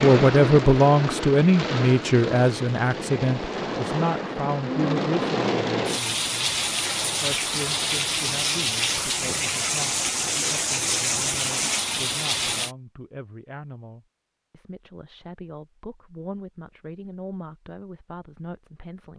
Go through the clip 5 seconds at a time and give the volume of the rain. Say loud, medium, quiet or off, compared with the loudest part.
loud, loud, loud, off.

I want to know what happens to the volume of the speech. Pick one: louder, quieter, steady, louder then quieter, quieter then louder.
quieter.